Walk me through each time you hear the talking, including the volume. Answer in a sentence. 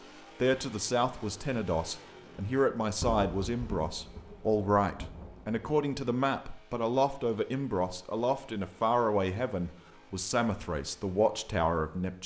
The talking can be heard from 0.4 to 12.2 s, at a steady volume.